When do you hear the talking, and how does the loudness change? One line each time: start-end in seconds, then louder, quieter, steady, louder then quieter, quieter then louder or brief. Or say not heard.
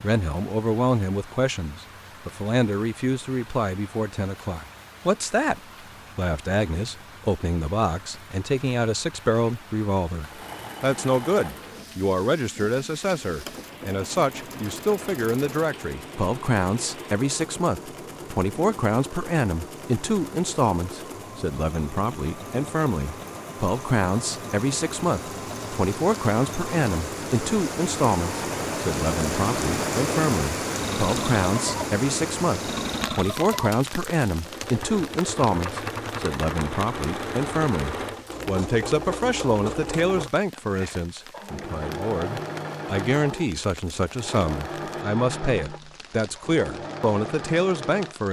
0.0-48.2 steady.